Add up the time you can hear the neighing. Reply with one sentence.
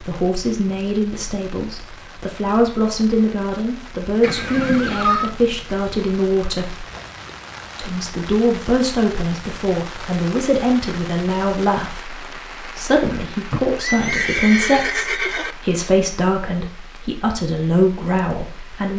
You can hear the neighing for 3 seconds altogether.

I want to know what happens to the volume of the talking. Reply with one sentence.
The loudness of the talking stays about the same.